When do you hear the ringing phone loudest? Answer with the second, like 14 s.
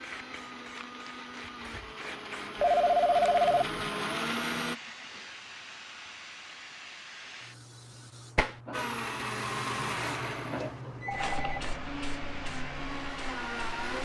3 s.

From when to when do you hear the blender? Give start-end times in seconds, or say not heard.
0.0-4.8, 8.7-13.9.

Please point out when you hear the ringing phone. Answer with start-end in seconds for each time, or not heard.
2.5-3.9, 10.6-11.6.